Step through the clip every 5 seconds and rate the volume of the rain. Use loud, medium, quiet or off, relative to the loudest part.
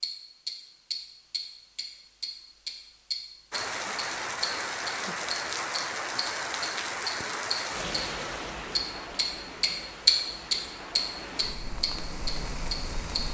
loud, loud, medium.